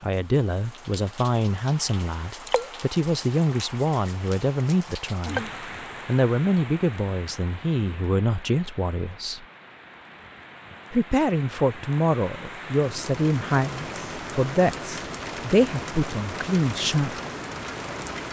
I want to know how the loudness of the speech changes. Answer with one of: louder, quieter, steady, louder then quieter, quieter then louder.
steady.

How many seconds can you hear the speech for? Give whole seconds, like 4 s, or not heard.
16 s.